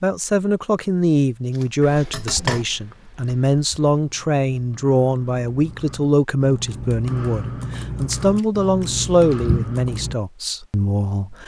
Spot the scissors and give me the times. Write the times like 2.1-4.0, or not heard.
1.6-2.6, 8.1-9.7.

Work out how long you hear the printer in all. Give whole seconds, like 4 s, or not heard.
not heard.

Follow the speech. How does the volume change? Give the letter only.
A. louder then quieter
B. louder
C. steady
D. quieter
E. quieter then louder
C.